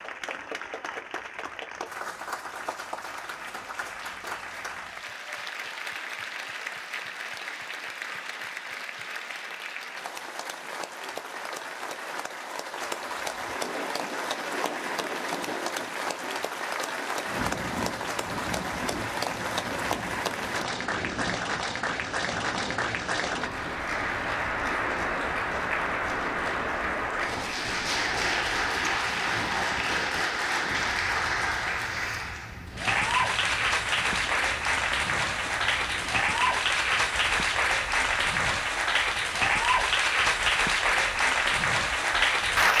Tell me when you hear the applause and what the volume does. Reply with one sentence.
The applause can be heard from 0.0 to 42.7 s, getting louder.